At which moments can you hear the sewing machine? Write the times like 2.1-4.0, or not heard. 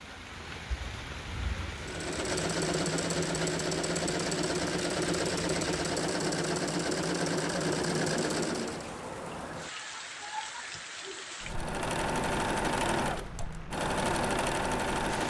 1.8-8.9, 11.4-15.2.